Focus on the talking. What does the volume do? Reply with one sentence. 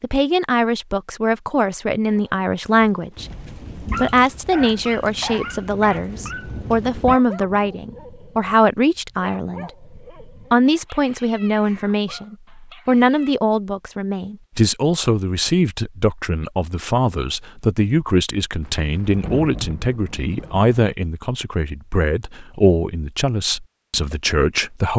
The loudness of the talking stays about the same.